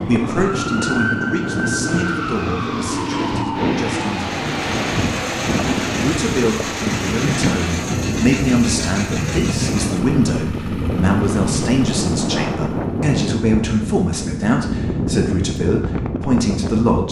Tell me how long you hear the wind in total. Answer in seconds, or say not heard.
17 s.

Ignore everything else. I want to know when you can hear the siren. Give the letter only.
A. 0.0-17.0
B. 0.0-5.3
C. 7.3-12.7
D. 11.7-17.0
B.